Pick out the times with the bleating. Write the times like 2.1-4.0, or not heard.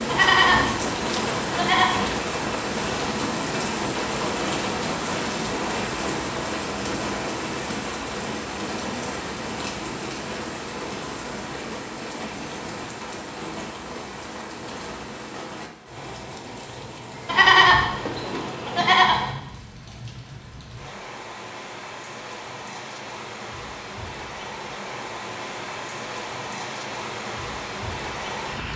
0.1-1.9, 17.2-19.3.